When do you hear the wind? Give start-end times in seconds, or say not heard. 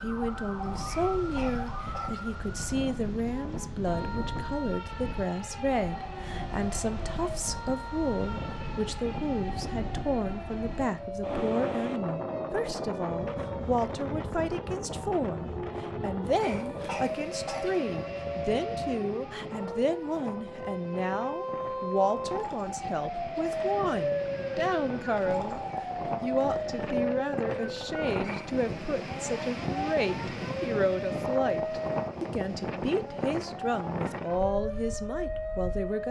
0.0-36.0.